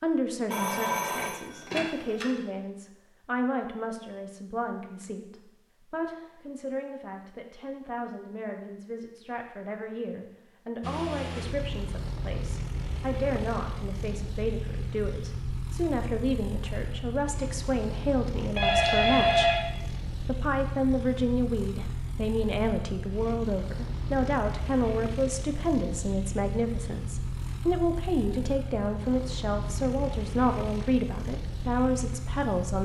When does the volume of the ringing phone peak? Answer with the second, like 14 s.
19 s.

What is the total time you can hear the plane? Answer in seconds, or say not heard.
22 s.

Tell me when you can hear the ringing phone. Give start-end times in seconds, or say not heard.
0.5-2.3, 18.6-19.6.